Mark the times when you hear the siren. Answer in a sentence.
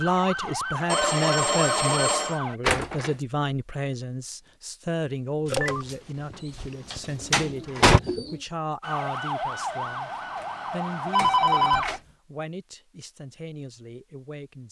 You can hear the siren from 0.0 to 2.6 s and from 8.8 to 12.0 s.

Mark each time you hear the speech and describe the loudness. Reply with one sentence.
You can hear the speech from 0.0 to 14.6 s, getting quieter.